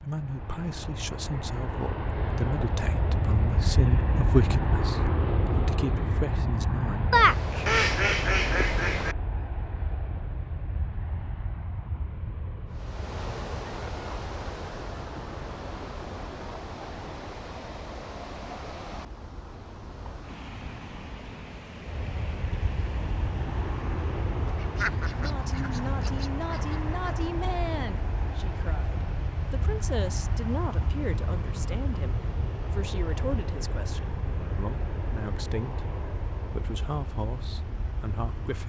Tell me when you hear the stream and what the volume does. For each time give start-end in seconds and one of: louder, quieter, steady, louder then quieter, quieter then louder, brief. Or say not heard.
12.7-38.6 quieter.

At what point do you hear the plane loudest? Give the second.
5 s.